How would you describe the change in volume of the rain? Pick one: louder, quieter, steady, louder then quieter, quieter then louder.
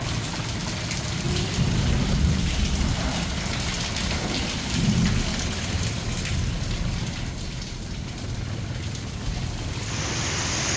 quieter.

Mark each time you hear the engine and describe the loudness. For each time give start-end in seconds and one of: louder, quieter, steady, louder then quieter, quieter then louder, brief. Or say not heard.
0.0-10.7 steady.